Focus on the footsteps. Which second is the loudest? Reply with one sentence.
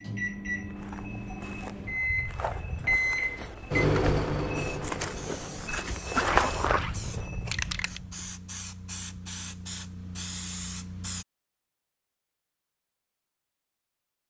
The volume of the footsteps peaks at 6 seconds.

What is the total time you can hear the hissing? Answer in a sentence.
The hissing can be heard for 7 seconds in total.